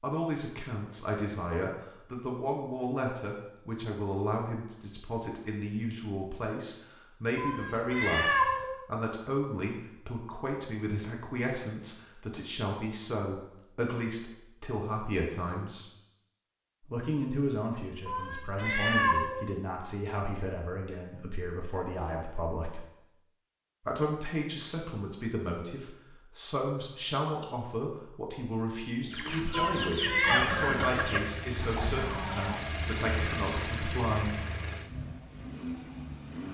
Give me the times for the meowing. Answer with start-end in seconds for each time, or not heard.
7.3-8.7, 18.1-19.4, 29.5-30.4.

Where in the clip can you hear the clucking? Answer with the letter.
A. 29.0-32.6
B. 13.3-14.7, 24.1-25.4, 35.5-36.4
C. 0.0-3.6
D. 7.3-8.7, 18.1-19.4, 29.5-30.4
A.